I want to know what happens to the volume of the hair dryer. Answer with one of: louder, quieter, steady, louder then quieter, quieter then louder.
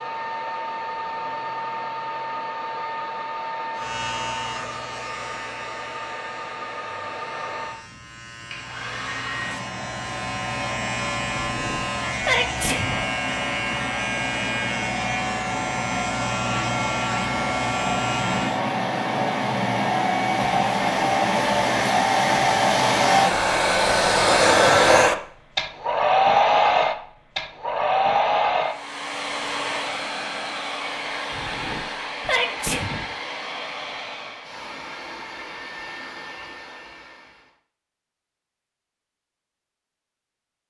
louder then quieter.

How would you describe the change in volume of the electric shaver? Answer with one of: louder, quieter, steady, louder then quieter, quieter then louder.
louder.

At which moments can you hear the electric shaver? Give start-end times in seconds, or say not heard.
3.8-18.6.